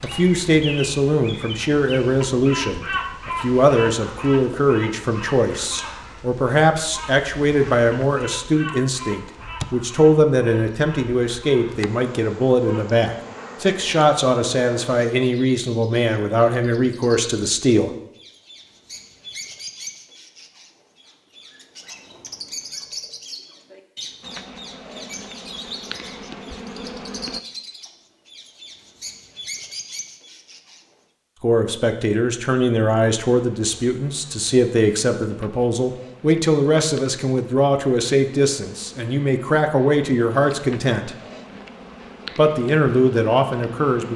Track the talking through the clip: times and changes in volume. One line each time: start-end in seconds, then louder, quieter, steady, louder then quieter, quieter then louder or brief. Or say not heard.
0.0-17.9 steady
31.4-41.1 steady
42.4-44.1 brief.